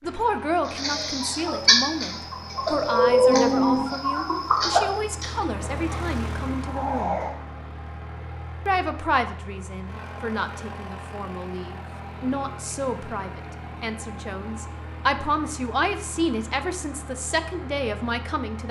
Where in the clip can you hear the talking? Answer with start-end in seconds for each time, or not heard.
0.0-7.2, 8.7-18.6.